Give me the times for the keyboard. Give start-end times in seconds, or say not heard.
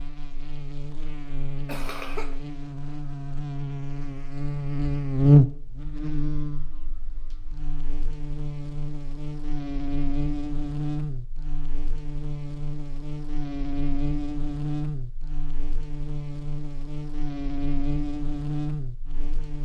not heard.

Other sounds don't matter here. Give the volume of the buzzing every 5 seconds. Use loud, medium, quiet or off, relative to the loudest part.
medium, loud, medium, medium.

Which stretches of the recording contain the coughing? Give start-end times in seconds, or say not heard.
1.6-2.4.